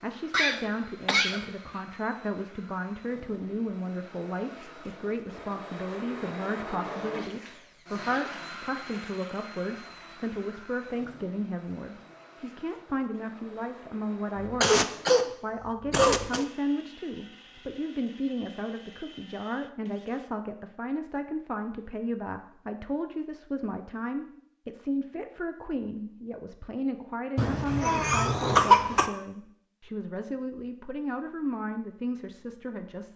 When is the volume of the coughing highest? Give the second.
29 s.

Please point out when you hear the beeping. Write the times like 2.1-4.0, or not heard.
not heard.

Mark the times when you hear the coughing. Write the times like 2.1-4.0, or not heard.
0.3-1.5, 14.4-16.4, 27.4-29.1.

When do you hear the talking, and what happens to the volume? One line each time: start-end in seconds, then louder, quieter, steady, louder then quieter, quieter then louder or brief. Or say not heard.
0.0-33.1 steady.